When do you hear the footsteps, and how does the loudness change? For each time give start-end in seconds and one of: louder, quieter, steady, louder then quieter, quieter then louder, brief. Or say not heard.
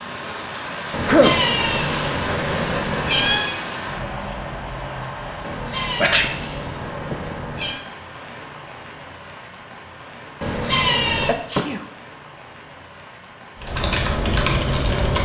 not heard.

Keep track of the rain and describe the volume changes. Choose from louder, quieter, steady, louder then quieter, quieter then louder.
quieter.